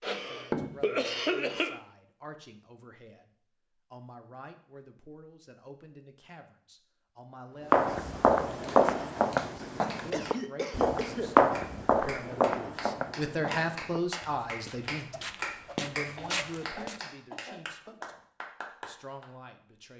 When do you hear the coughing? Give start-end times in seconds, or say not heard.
0.0-1.8, 10.1-11.3, 16.1-18.1.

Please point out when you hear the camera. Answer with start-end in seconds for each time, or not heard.
not heard.